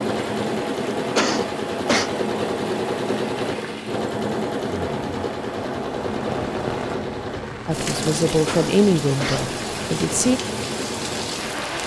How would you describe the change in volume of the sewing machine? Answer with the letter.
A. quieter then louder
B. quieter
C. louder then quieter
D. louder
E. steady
B.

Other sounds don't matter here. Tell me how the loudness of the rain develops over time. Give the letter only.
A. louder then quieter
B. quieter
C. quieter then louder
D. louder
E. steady
D.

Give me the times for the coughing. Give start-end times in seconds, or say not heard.
1.1-2.1, 8.4-9.6.